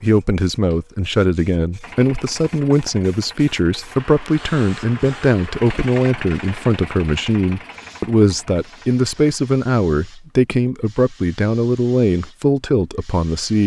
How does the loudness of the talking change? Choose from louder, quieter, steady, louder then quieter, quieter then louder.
steady.